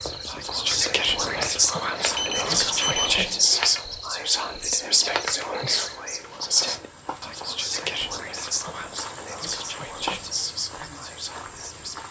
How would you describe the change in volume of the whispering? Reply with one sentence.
The loudness of the whispering goes down.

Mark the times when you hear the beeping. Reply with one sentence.
The beeping can be heard from 2.1 to 3.1 s.